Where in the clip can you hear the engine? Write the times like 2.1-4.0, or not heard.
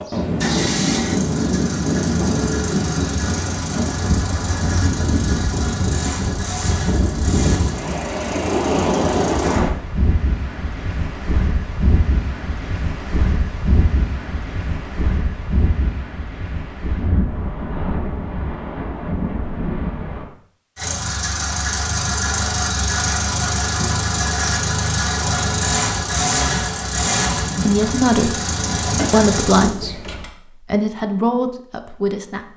0.0-9.7, 20.8-30.2.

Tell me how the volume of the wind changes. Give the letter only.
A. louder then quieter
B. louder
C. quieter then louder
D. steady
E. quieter
E.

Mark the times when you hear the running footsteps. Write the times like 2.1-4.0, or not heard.
not heard.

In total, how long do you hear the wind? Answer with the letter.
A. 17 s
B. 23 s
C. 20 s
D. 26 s
C.